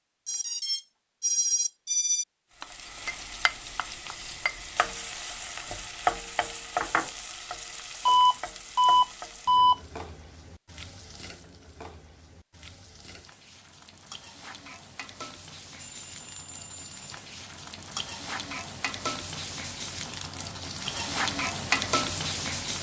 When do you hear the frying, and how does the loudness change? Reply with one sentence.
You can hear the frying from 2.6 to 22.7 s, getting quieter then louder.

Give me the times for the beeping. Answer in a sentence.
You can hear the beeping from 0.2 to 2.2 s, from 8.1 to 9.8 s and from 15.8 to 16.9 s.